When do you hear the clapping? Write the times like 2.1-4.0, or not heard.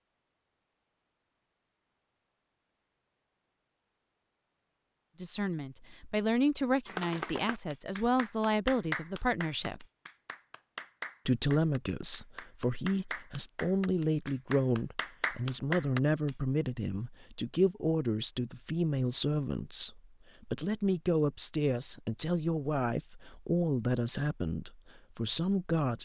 6.8-16.3.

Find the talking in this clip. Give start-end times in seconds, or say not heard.
5.2-9.8, 11.2-26.0.